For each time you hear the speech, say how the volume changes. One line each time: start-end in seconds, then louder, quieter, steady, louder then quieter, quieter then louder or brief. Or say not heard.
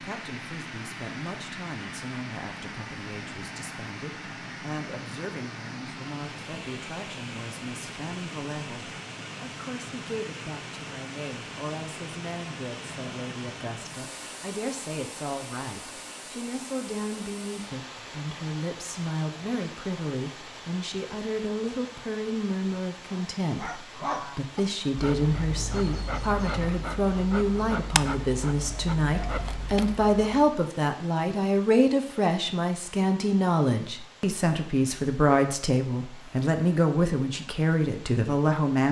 0.0-38.8 louder.